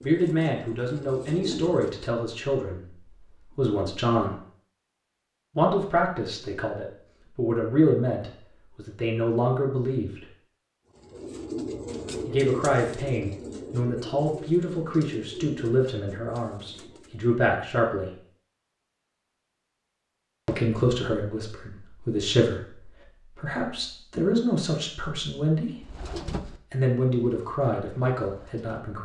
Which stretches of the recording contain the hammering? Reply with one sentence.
You can't hear the hammering here.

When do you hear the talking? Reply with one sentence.
You can hear the talking from 0.0 to 4.3 s, from 5.5 to 10.2 s, from 12.2 to 18.1 s, from 20.4 to 25.9 s and from 26.7 to 29.0 s.